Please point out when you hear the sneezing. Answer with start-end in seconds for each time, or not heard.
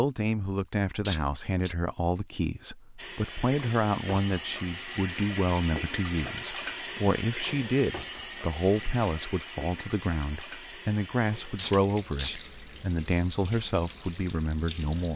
0.7-1.8, 11.2-12.4.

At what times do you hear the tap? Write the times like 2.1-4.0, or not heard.
3.0-15.1.